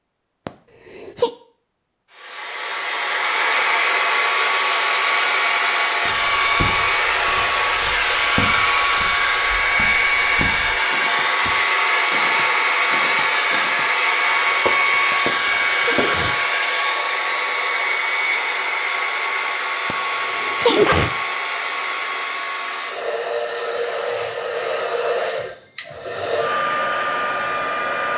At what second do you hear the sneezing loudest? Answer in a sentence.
The loudest moment of the sneezing is at 21 seconds.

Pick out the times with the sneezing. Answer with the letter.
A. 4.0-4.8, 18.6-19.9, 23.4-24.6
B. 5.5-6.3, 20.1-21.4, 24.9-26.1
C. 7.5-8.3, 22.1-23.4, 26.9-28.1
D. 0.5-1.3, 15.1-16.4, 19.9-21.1
D.